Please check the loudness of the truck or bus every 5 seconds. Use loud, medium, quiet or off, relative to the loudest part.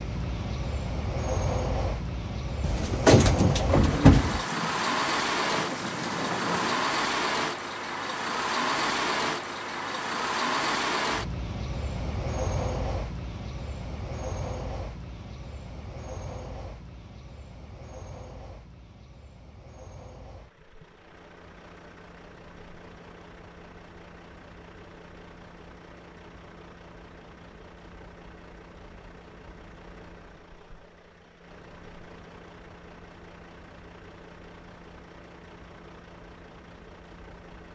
loud, loud, loud, quiet, quiet, quiet, quiet, quiet.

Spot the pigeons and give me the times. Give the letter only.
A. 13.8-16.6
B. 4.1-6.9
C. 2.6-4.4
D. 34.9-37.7
C.